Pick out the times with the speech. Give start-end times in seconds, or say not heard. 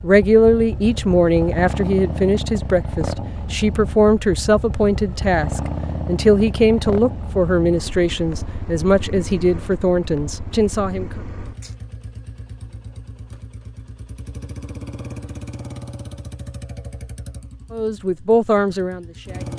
0.0-11.1, 17.7-19.5.